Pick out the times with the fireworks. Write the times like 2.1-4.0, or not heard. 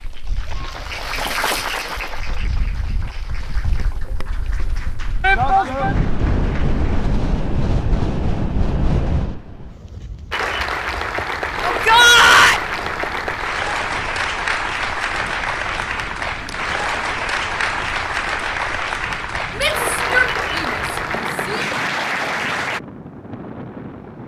not heard.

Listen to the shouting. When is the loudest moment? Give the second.
12 s.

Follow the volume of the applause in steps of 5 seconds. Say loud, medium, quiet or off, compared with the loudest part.
medium, quiet, loud, loud, loud.